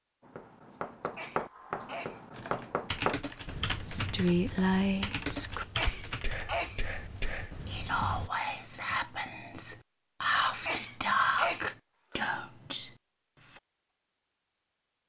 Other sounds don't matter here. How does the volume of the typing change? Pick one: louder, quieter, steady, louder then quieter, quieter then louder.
louder.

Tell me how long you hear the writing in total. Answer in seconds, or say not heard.
8 s.